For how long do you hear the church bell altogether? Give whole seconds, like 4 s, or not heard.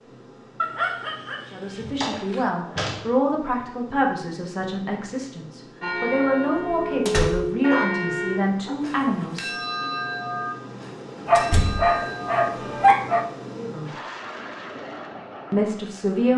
7 s.